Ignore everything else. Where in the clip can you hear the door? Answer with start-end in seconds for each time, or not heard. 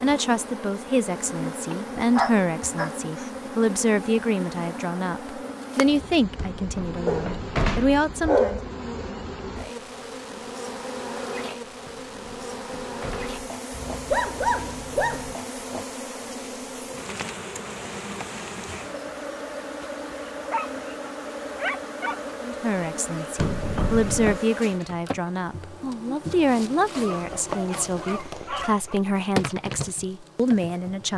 6.3-8.1, 11.8-13.4, 23.4-24.4.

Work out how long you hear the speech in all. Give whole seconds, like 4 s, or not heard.
17 s.